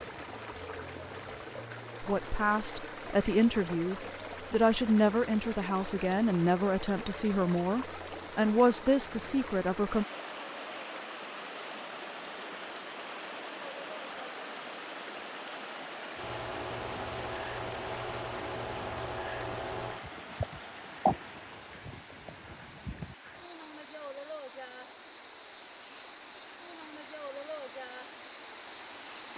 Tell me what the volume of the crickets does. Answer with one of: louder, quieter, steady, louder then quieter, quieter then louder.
louder.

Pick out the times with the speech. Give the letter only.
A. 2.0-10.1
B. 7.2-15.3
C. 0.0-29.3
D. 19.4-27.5
A.